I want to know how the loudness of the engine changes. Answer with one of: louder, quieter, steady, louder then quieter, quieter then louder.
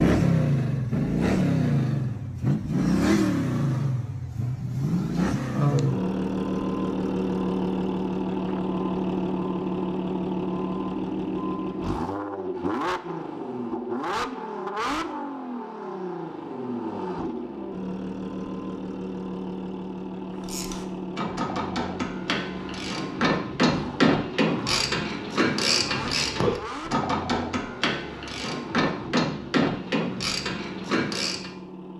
quieter.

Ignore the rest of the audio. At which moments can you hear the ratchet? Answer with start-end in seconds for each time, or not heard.
20.4-31.5.